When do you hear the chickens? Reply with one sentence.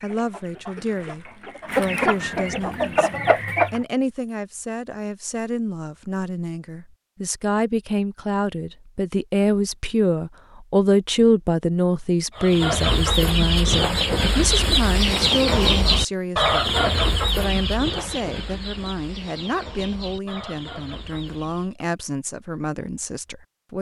You can hear the chickens from 0.0 to 3.9 s and from 12.3 to 21.8 s.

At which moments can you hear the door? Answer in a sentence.
You can't hear the door here.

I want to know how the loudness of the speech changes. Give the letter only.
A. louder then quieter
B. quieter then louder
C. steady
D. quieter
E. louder
A.